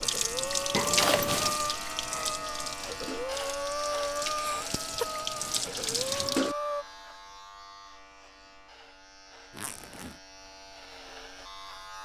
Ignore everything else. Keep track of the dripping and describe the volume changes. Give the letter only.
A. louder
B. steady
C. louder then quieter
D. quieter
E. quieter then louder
E.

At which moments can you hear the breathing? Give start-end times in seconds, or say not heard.
0.0-6.8.